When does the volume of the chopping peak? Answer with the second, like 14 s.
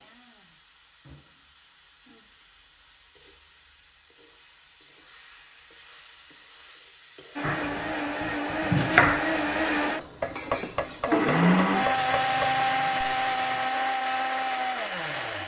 9 s.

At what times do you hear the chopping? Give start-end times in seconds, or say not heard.
7.4-12.6.